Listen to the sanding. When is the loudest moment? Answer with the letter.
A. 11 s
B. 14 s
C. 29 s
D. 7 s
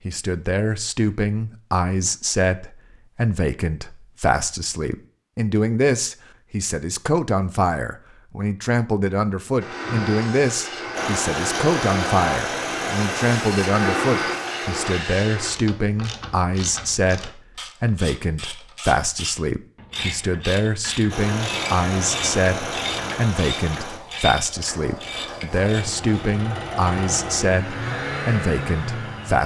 B.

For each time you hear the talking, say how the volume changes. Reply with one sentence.
The talking can be heard from 0.1 to 29.4 s, at a steady volume.